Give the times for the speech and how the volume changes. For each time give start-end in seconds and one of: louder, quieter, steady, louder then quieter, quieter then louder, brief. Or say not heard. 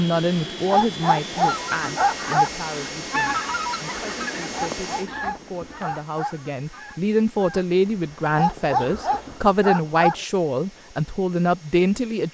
0.0-12.2 quieter then louder.